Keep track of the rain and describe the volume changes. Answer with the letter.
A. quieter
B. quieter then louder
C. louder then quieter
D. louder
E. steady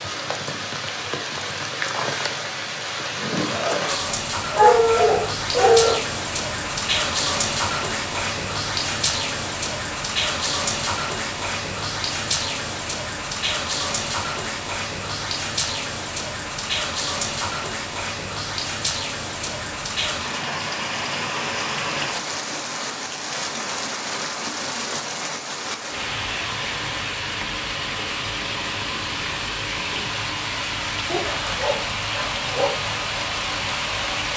E.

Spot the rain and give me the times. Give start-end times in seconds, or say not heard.
0.0-34.3.